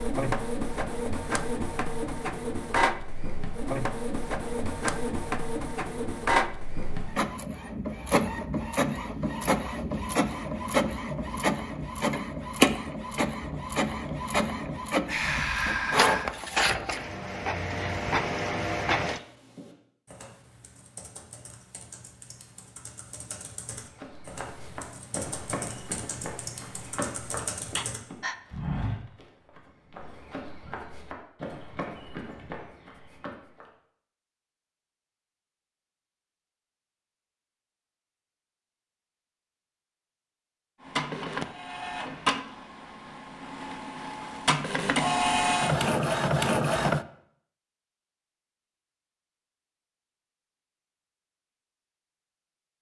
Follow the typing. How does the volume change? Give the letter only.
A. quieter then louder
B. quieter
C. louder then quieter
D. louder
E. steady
D.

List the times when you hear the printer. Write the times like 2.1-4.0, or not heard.
0.0-19.2, 40.8-47.0.